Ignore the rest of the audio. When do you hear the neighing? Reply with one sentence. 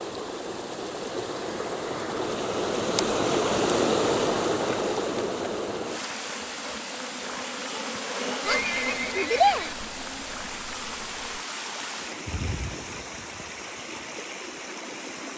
You can hear the neighing from 8.4 to 9.8 s.